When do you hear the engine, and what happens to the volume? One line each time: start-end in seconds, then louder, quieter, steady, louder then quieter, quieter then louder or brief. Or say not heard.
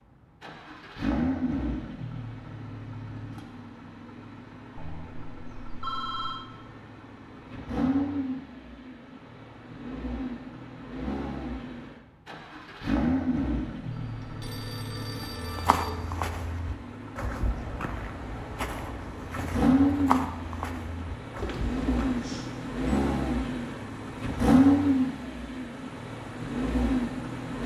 0.4-27.6 louder.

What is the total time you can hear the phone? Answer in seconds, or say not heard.
5 s.